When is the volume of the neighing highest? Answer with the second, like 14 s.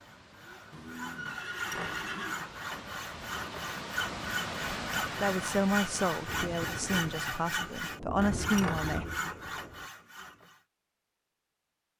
2 s.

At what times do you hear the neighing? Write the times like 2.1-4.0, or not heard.
0.7-2.5.